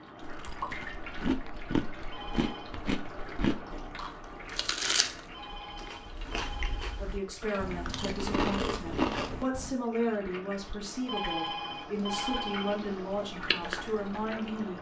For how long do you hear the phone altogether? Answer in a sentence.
You can hear the phone for 5 seconds altogether.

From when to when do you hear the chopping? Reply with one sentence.
The chopping can't be heard in this clip.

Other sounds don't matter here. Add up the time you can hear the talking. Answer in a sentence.
You can hear the talking for 8 seconds altogether.